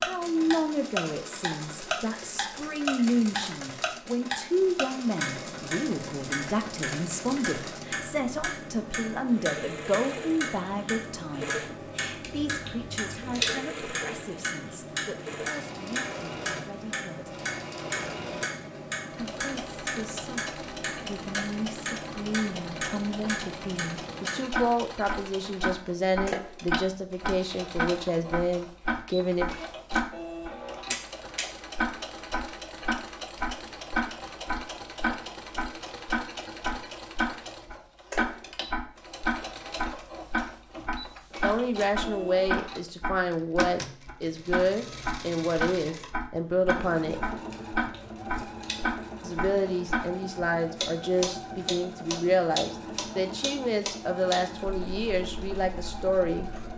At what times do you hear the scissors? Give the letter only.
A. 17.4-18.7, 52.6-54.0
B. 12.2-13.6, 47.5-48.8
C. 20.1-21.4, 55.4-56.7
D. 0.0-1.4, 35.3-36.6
B.